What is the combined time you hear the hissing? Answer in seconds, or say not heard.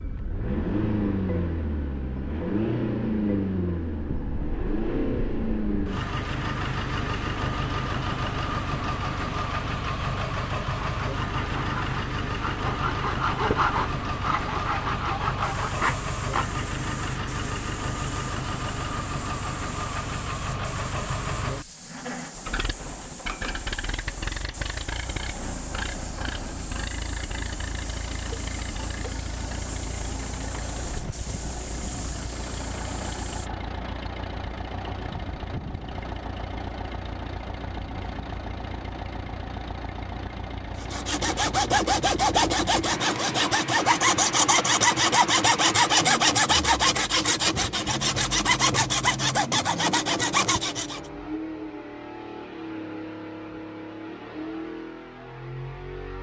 18 s.